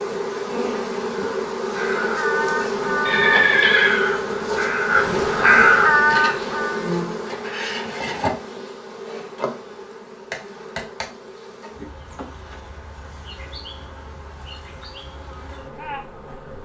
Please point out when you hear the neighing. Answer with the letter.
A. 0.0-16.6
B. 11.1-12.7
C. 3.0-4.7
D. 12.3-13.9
C.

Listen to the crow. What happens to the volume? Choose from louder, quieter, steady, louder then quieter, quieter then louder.
louder.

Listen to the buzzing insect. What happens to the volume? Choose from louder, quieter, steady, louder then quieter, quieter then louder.
quieter.